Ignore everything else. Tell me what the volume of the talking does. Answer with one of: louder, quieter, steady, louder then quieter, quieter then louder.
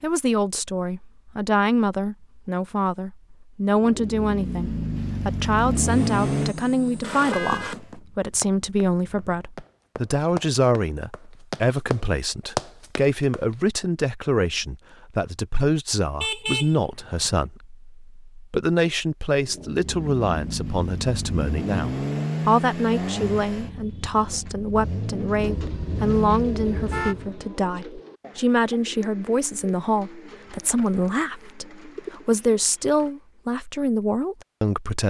steady.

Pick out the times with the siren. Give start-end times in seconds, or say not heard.
not heard.